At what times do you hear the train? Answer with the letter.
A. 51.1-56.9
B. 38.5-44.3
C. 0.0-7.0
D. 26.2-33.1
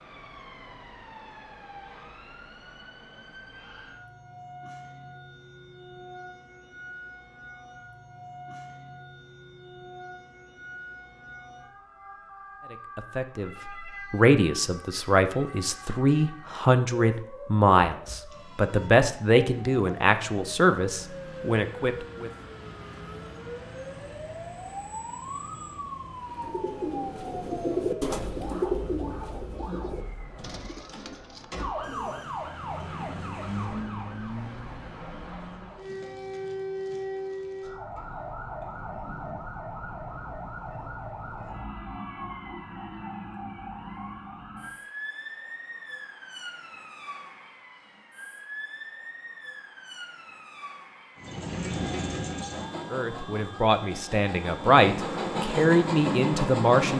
A.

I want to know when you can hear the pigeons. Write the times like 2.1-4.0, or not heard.
26.2-33.1.